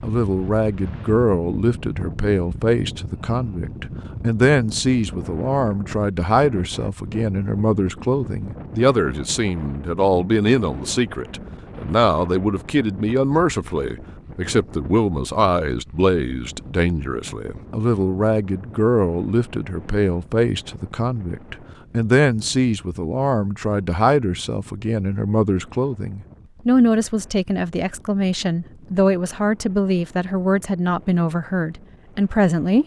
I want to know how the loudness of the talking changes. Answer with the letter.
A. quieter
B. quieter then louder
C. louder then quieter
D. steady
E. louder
D.